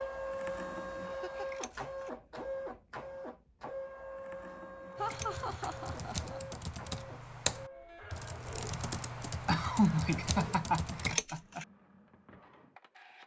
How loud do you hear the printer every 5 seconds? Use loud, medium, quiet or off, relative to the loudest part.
loud, medium, quiet.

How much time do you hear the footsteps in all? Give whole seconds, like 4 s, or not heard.
not heard.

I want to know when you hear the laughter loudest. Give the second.
10 s.